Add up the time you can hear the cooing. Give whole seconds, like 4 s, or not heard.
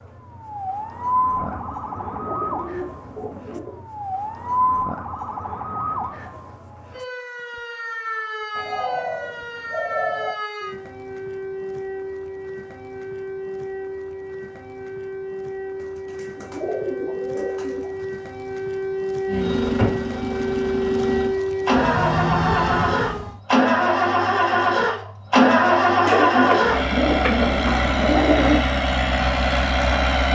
9 s.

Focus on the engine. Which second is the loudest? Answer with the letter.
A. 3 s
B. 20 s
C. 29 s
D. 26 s
D.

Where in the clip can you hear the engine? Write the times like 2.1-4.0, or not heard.
19.2-30.3.